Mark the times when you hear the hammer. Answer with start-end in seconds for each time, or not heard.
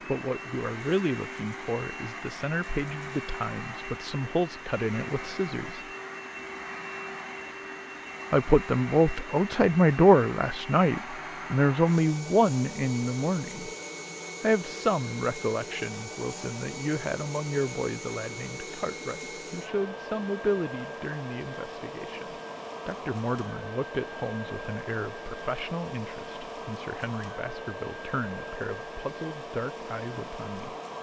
not heard.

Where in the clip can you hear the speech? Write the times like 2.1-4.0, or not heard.
0.1-5.8, 8.3-13.7, 14.4-30.8.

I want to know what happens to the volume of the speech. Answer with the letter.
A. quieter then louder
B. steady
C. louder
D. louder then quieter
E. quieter
D.